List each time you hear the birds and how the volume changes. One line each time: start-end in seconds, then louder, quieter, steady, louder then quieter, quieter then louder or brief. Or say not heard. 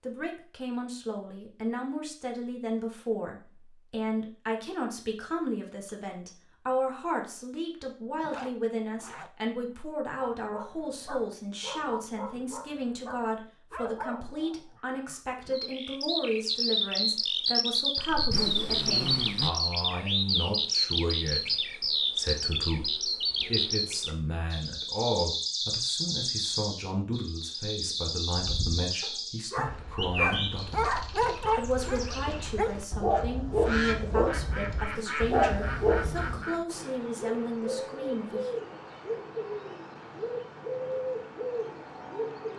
15.5-42.5 quieter.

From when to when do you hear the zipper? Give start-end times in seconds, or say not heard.
8.2-9.3, 18.1-19.5, 34.8-36.6.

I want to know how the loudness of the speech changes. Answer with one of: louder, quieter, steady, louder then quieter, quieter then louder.
steady.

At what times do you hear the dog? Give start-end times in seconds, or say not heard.
10.2-15.6, 28.4-36.5.